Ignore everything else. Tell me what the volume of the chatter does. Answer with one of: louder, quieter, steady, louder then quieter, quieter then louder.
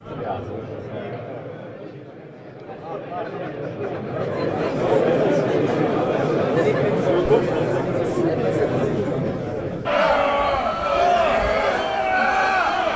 louder.